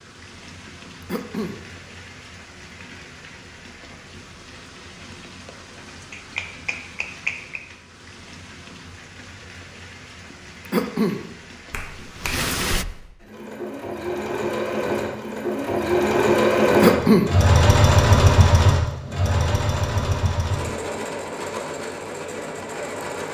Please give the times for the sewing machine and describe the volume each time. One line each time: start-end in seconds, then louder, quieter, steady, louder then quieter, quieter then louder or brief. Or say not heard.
13.2-23.3 louder then quieter.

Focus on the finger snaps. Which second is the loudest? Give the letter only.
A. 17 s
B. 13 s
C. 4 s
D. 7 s
D.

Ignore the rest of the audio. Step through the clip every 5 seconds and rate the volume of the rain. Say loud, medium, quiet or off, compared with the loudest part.
medium, medium, loud, off, off.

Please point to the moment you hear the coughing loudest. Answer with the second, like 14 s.
17 s.